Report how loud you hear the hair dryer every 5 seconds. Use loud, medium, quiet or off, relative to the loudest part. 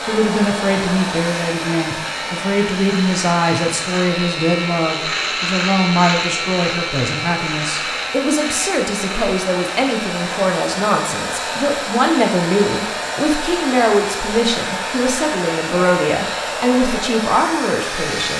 loud, medium, loud, loud.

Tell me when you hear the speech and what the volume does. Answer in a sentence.
The speech can be heard from 0.0 to 18.3 s, at a steady volume.